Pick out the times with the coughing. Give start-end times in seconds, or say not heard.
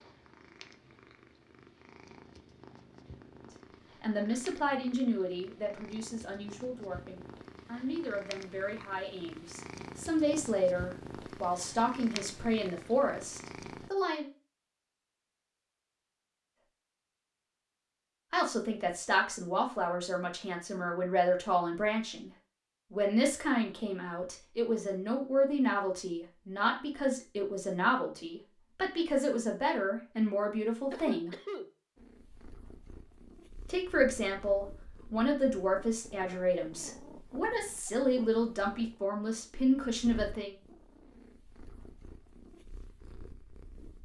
30.9-31.7.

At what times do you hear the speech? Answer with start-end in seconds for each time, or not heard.
4.0-14.3, 18.3-22.3, 22.9-31.4, 33.6-40.5.